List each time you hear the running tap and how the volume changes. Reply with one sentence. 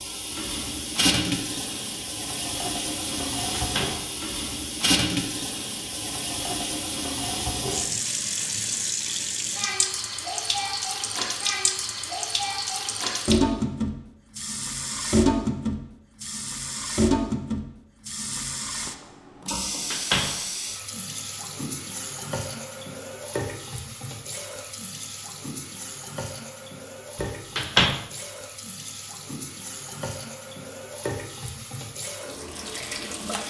The running tap can be heard from 0.0 to 33.4 s, getting quieter.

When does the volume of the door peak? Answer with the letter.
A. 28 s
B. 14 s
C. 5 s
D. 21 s
A.